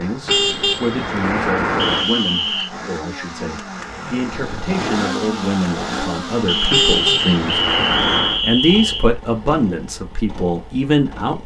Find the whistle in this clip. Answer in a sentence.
You can hear the whistle from 1.8 to 2.7 s and from 6.5 to 9.1 s.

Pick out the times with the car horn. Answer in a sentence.
You can hear the car horn from 0.2 to 2.0 s and from 6.7 to 8.4 s.